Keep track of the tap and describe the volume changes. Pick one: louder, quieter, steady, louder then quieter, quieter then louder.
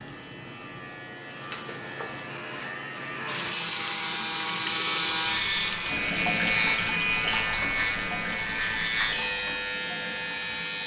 quieter.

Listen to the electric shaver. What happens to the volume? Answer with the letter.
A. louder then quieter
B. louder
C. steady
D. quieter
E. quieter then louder
B.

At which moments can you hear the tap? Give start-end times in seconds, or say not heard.
3.2-10.8.